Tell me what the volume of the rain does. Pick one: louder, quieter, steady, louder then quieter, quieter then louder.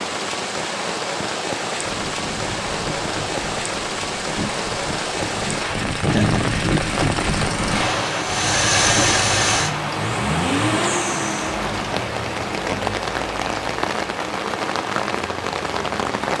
steady.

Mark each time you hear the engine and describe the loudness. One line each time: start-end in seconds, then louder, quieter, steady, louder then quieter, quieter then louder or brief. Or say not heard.
1.8-16.1 louder then quieter.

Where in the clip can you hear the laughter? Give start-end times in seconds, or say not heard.
6.0-6.7.